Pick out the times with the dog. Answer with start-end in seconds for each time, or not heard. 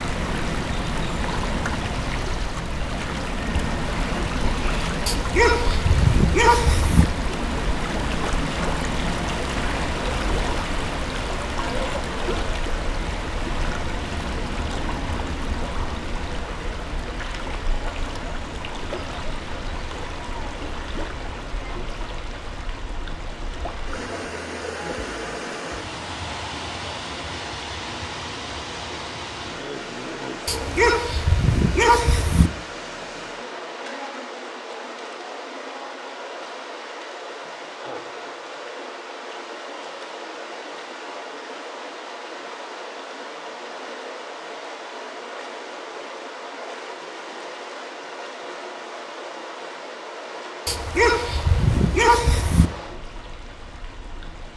5.0-7.0, 30.4-32.5, 50.6-52.7.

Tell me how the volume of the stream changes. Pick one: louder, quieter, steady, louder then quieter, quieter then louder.
quieter.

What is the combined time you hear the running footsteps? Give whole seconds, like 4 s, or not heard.
not heard.